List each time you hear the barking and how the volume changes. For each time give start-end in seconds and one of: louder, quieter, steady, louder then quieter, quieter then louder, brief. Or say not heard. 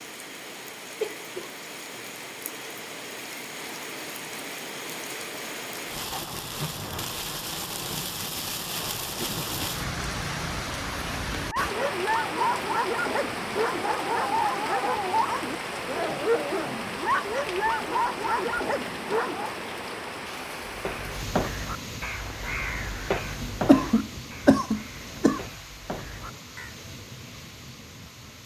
11.4-19.6 steady.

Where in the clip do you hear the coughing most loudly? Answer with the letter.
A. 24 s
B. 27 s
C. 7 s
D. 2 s
A.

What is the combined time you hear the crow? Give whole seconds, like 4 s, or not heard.
6 s.